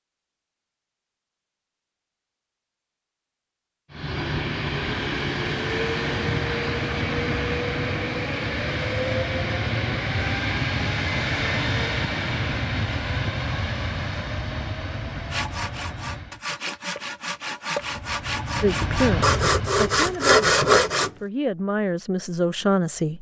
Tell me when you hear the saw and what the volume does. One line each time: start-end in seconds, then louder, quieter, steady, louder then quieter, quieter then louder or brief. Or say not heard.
15.3-21.1 louder.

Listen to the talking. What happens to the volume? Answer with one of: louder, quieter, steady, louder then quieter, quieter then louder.
quieter then louder.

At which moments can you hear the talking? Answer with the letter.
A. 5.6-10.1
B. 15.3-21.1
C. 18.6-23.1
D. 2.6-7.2
C.